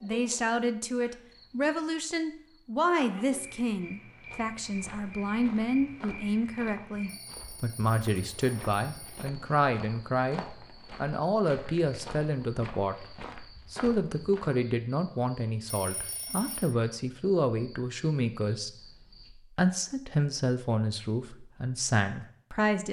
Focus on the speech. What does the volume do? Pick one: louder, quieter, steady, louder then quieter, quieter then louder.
steady.